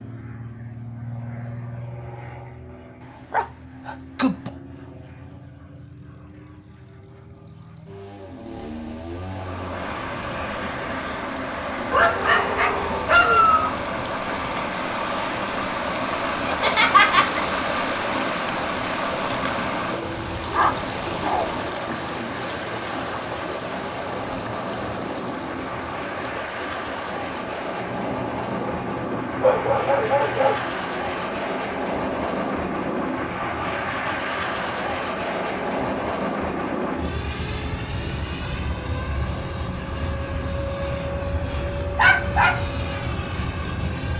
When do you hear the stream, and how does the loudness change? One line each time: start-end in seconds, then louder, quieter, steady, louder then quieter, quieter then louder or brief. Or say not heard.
9.2-44.1 quieter.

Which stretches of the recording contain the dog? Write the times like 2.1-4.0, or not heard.
3.3-4.5, 11.9-13.8, 20.0-21.5, 28.1-30.6, 41.5-42.6.